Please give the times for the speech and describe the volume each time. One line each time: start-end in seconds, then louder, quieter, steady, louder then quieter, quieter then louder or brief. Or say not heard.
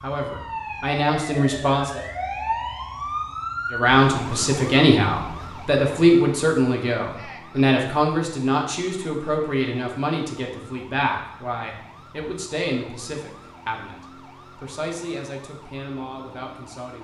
0.0-2.0 brief
3.7-13.9 quieter
14.6-16.9 brief.